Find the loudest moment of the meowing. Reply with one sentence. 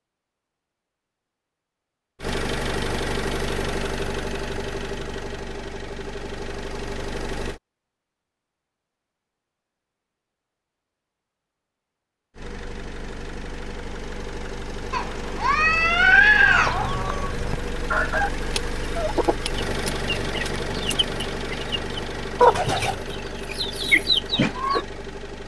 The loudest moment of the meowing is at 16 seconds.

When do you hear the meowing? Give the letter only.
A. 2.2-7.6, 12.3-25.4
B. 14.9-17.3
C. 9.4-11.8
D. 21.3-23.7
B.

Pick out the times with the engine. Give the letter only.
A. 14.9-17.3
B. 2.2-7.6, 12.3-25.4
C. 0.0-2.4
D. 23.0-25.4
B.